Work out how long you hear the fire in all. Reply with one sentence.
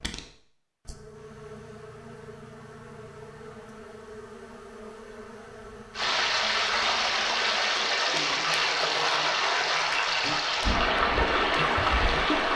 You can't hear the fire here.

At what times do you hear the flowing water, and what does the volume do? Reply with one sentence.
The flowing water can be heard from 6.0 to 12.5 s, at a steady volume.